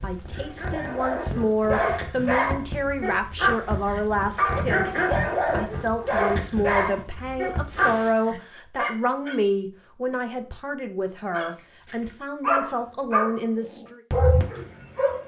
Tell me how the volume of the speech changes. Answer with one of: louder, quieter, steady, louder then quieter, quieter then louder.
steady.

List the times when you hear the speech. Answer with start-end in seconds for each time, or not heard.
0.0-14.0.